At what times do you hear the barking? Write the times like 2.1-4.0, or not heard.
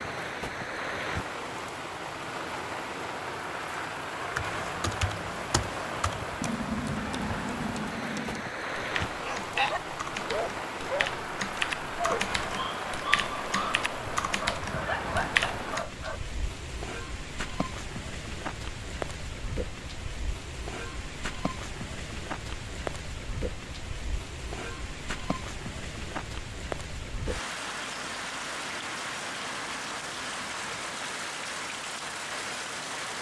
9.0-16.2.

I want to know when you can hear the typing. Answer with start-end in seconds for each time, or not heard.
4.3-15.8.